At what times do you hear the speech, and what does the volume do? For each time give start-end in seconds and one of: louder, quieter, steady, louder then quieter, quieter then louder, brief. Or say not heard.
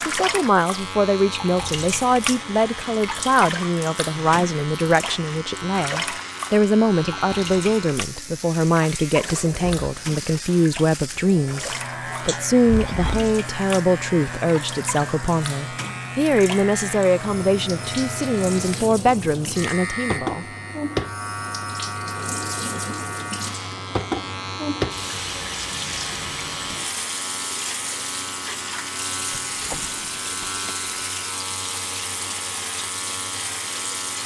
0.1-20.4 steady.